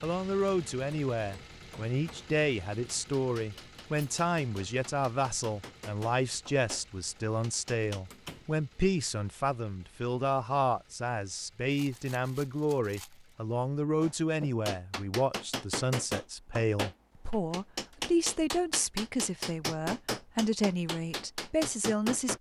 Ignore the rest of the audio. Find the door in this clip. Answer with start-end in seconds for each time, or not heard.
8.1-8.5.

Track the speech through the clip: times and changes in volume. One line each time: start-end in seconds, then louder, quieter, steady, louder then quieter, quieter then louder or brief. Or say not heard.
0.0-22.3 steady.